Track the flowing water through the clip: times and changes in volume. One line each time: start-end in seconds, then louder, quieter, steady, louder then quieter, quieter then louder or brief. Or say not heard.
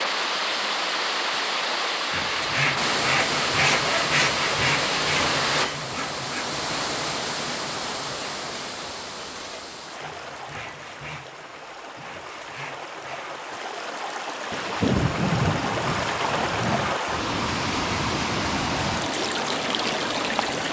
0.0-20.6 quieter then louder.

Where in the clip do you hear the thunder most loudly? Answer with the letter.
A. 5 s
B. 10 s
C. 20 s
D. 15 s
D.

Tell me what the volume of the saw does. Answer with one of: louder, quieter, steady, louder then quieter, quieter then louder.
quieter.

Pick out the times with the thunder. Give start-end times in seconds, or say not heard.
14.5-17.0.